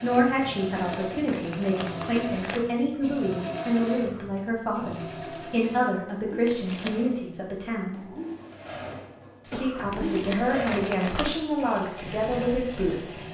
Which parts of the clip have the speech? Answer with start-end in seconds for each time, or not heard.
0.0-8.0, 9.4-12.9.